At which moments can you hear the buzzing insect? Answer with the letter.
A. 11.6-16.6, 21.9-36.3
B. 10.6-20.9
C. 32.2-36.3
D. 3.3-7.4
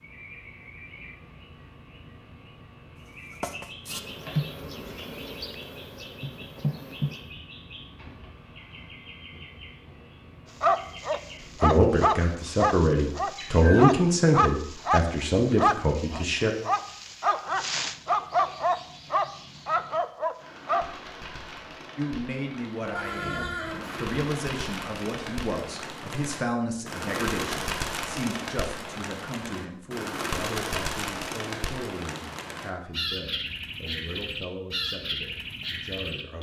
D.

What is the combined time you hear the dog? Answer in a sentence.
The dog can be heard for 10 seconds in total.